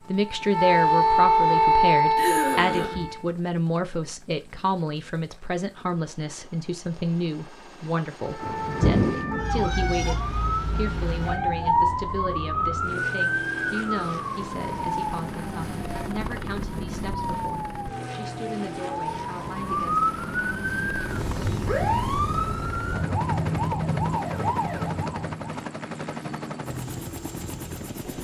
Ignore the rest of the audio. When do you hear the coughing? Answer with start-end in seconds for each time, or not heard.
2.1-3.1.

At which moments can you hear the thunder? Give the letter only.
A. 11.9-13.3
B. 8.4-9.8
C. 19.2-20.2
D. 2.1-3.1
B.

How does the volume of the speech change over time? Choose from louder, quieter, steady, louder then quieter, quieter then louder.
quieter.